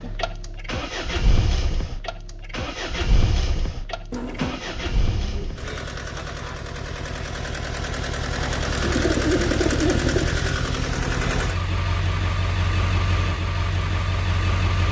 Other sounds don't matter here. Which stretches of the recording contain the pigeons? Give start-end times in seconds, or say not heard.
4.1-5.7, 8.3-10.3.